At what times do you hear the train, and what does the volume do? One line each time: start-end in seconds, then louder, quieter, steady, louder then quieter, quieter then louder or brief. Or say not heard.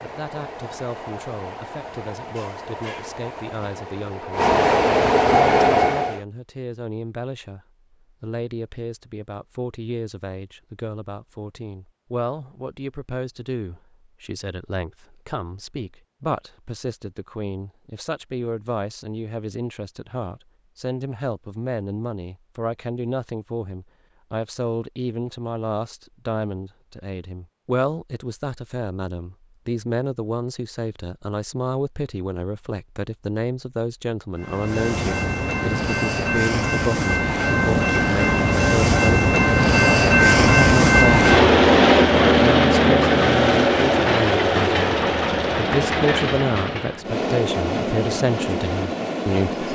0.0-6.2 louder
34.4-49.7 louder then quieter.